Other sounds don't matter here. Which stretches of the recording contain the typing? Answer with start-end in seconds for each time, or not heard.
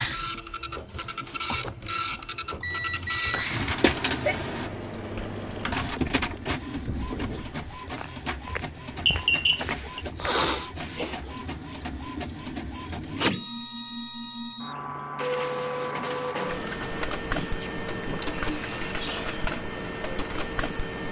0.0-5.8.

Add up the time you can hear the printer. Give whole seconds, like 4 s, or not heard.
21 s.